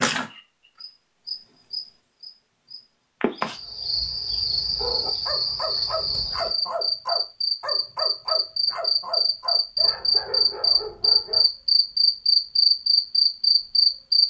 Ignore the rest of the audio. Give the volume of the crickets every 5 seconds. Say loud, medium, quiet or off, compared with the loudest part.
medium, medium, loud.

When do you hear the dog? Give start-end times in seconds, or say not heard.
4.8-11.4.